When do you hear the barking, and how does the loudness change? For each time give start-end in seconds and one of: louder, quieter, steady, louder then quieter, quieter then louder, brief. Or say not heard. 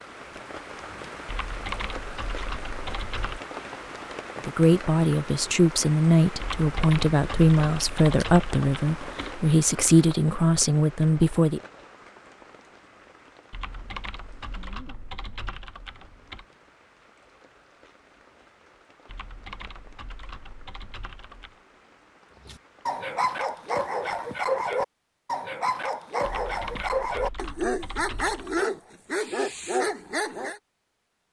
22.4-30.6 steady.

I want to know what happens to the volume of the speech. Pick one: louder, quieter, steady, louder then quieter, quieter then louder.
steady.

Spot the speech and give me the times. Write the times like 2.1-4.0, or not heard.
4.5-11.6.